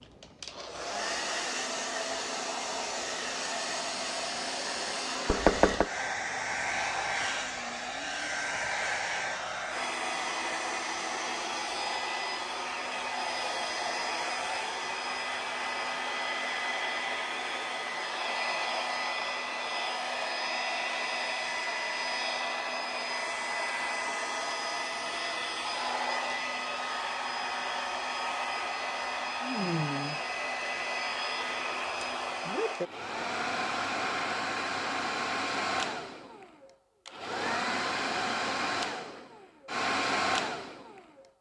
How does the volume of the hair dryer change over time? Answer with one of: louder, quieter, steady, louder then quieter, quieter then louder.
steady.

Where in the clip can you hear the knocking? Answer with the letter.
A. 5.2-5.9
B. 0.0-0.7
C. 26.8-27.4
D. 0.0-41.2
A.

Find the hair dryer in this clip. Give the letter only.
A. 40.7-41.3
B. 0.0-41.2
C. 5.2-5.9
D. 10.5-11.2
B.